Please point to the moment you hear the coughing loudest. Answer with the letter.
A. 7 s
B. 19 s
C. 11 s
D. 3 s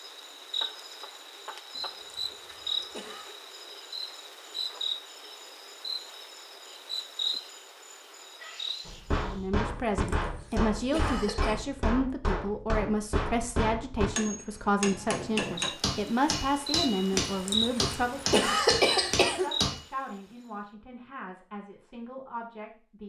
B.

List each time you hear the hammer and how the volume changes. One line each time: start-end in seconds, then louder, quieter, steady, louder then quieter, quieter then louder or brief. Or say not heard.
8.8-19.8 steady.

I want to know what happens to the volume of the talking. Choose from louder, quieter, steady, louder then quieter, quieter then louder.
quieter.